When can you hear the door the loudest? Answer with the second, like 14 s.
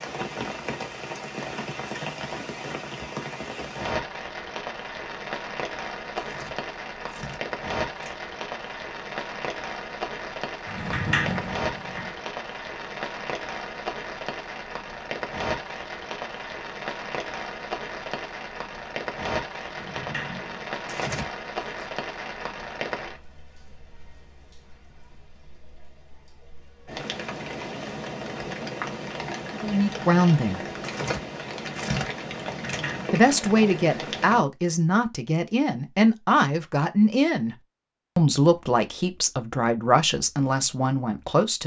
11 s.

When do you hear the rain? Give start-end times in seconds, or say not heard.
0.0-34.5.